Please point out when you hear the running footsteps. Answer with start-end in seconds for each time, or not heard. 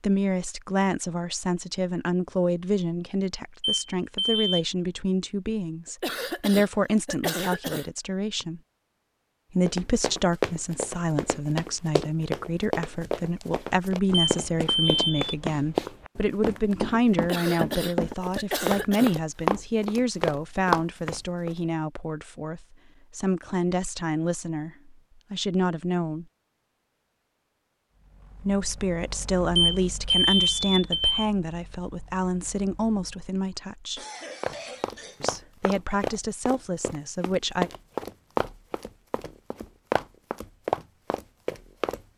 9.7-21.5, 34.4-42.0.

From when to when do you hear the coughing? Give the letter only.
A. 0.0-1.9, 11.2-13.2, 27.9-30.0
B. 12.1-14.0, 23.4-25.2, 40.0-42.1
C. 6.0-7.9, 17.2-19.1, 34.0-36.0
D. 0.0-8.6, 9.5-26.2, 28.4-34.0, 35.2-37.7
C.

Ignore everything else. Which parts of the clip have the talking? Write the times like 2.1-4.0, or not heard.
0.0-8.6, 9.5-26.2, 28.4-34.0, 35.2-37.7.